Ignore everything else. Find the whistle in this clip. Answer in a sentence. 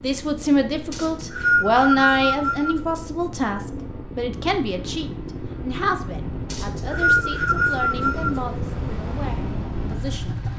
You can hear the whistle from 0.9 to 2.8 s and from 6.5 to 8.4 s.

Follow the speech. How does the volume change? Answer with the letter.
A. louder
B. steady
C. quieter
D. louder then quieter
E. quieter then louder
C.